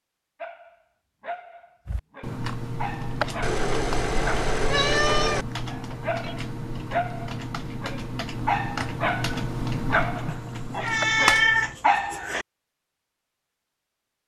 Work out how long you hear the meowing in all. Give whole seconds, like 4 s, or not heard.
4 s.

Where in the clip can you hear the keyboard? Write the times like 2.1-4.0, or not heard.
1.9-11.8.